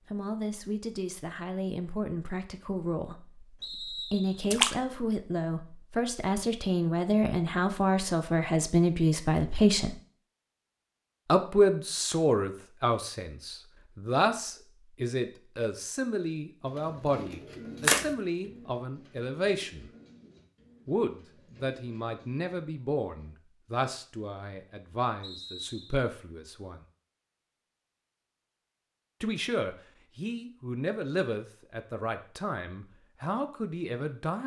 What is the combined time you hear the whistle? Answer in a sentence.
You can hear the whistle for 2 seconds altogether.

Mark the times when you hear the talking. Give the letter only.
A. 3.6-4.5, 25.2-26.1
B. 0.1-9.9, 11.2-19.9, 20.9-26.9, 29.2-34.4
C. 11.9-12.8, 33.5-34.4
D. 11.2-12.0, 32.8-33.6
B.